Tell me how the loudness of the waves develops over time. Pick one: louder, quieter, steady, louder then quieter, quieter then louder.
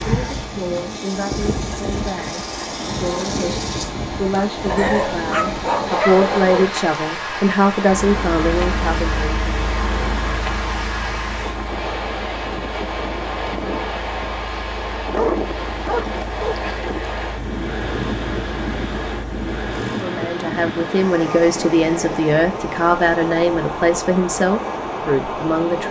steady.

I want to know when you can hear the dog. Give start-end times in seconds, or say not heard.
4.7-6.7, 14.9-16.6.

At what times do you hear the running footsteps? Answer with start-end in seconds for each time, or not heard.
not heard.